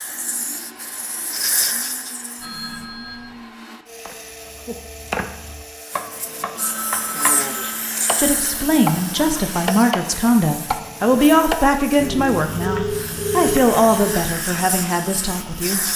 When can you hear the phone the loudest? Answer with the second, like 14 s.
13 s.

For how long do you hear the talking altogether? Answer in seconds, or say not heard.
8 s.